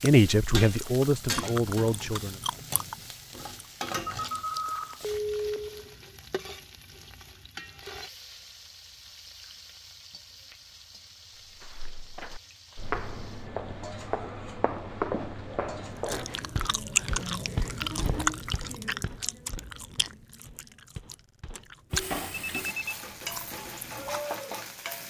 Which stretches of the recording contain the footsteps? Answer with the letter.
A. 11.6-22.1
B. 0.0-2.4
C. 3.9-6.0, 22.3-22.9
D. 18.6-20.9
A.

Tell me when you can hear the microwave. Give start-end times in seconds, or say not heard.
not heard.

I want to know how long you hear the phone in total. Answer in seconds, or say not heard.
3 s.